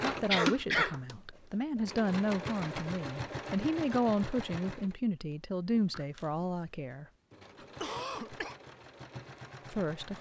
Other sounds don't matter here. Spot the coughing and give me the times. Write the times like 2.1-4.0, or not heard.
0.2-0.9, 7.5-8.6.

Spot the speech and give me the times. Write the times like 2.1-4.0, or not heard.
0.0-7.0, 9.7-10.1.